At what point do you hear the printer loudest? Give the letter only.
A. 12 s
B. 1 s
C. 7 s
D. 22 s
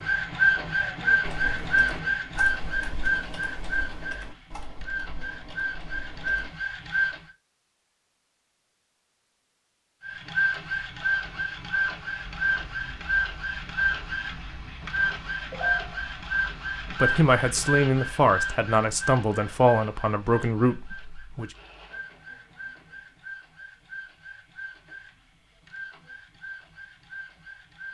B.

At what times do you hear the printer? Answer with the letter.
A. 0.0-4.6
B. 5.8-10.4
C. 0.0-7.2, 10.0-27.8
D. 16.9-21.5
C.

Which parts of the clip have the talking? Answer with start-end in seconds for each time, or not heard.
16.9-21.5.